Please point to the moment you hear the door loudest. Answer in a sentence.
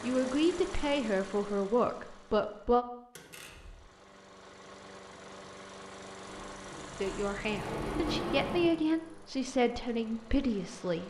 The volume of the door peaks at 8 seconds.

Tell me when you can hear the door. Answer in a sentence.
You can hear the door from 3.1 to 3.9 s and from 6.2 to 8.8 s.